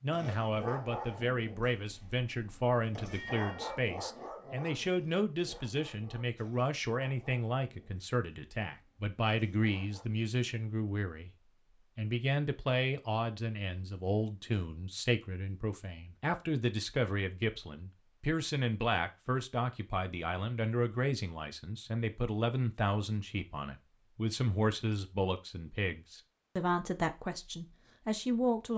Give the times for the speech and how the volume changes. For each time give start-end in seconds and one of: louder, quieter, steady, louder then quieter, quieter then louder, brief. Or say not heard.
0.0-28.7 steady.